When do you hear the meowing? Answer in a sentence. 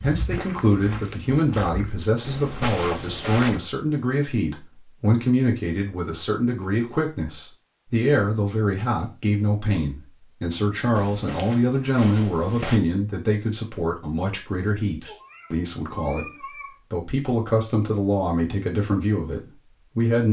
You can hear the meowing from 15.1 to 16.8 s.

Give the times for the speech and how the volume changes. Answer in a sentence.
The speech can be heard from 0.0 to 20.2 s, at a steady volume.